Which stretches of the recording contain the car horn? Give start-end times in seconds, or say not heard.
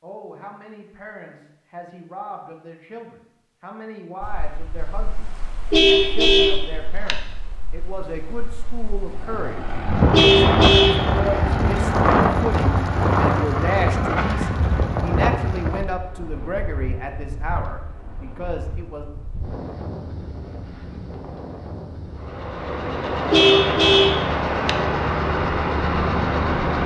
5.7-7.2, 10.1-11.1, 23.3-24.8.